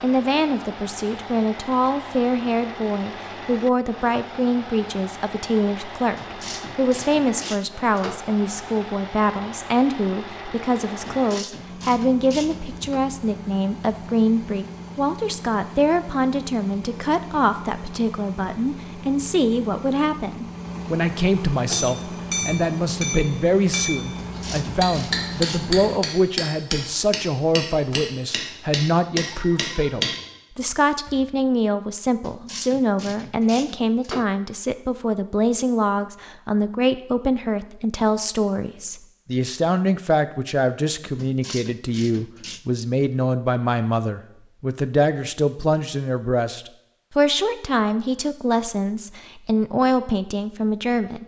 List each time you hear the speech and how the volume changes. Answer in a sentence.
The speech can be heard from 0.0 to 51.2 s, at a steady volume.